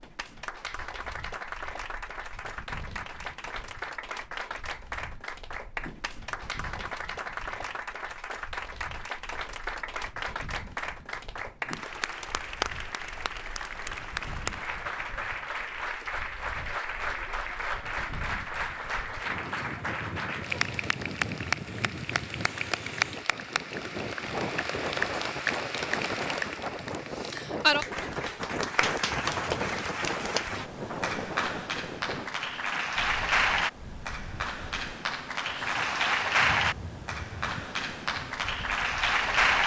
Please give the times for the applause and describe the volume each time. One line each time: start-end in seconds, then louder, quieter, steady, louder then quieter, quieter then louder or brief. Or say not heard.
0.0-39.6 louder.